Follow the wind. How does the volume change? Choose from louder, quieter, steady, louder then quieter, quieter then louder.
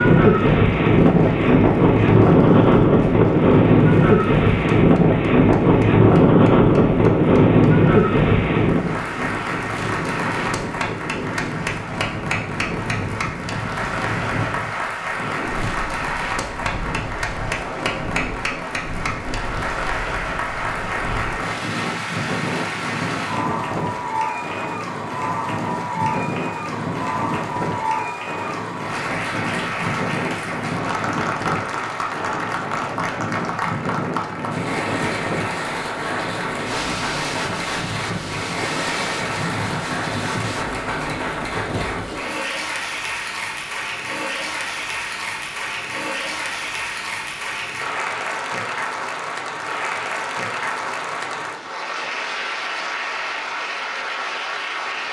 quieter.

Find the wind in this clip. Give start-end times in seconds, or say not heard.
0.0-42.2.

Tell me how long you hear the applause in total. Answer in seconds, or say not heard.
55 s.